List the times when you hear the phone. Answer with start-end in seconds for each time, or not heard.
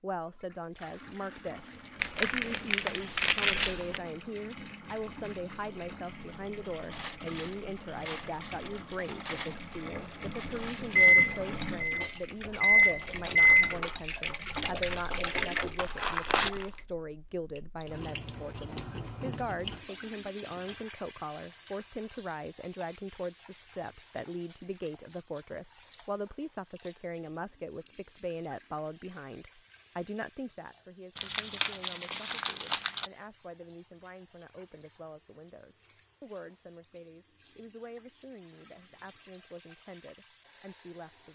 not heard.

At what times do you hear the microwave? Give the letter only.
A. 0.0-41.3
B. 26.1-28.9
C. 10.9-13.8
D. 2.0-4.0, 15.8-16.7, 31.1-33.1
C.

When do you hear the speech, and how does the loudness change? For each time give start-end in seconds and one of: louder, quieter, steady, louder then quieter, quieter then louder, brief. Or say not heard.
0.0-41.3 quieter.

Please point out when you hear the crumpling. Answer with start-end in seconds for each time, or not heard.
2.0-4.0, 15.8-16.7, 31.1-33.1.